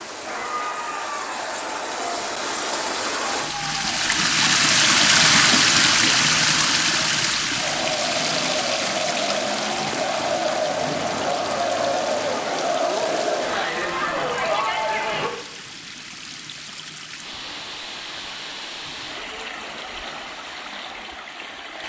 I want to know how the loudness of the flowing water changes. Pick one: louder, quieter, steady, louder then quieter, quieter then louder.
louder then quieter.